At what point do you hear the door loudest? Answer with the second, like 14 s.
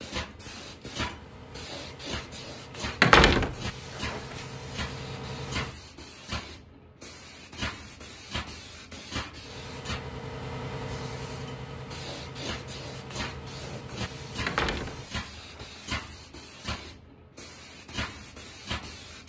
3 s.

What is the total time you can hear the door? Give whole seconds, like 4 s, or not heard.
3 s.